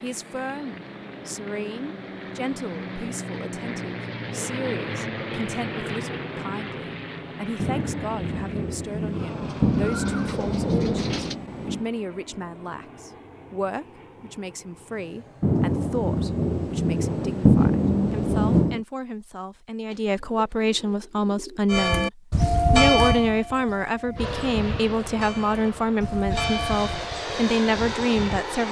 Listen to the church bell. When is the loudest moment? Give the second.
23 s.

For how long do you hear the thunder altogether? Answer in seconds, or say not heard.
8 s.